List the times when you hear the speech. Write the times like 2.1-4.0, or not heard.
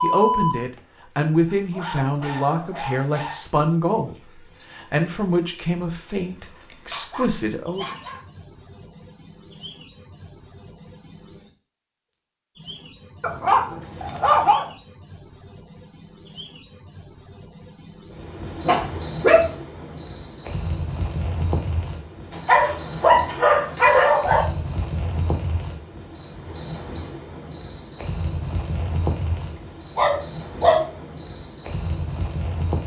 0.0-7.9.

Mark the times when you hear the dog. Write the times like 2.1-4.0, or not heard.
1.4-3.5, 6.3-8.2, 13.2-14.7, 18.6-19.4, 22.3-24.4, 29.6-30.9.